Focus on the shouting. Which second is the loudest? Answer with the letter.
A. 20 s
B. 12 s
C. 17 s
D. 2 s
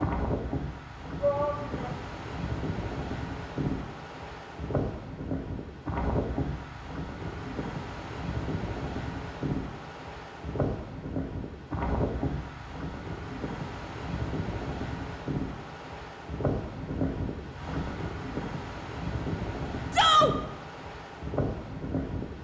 A.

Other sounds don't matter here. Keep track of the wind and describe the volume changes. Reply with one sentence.
The volume of the wind stays about the same.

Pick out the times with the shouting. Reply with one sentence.
You can hear the shouting from 1.2 to 1.9 s and from 19.9 to 20.4 s.